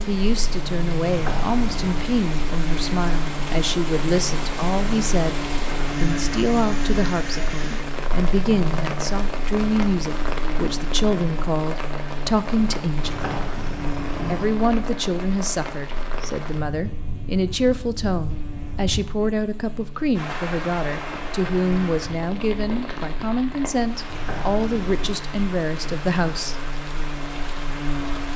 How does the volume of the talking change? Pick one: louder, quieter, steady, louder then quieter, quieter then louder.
steady.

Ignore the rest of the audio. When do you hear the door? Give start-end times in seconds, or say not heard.
1.1-1.9, 13.1-14.6, 24.1-25.2.